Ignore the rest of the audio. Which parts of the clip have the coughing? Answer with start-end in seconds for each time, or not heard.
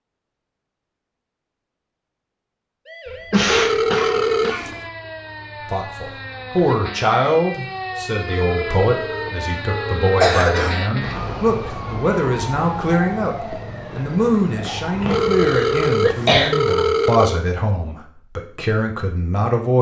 3.3-4.7, 10.2-11.2, 14.6-16.5.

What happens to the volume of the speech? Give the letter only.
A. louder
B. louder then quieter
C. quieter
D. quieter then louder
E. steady
E.